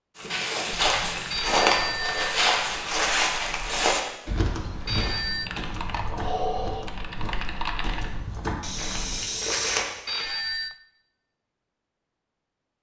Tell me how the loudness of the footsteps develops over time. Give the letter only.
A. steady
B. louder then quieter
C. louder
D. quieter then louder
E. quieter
D.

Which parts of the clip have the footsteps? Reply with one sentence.
You can hear the footsteps from 0.1 to 9.8 s.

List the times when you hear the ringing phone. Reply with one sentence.
The ringing phone can be heard from 1.3 to 2.4 s, from 4.8 to 5.5 s and from 10.1 to 10.8 s.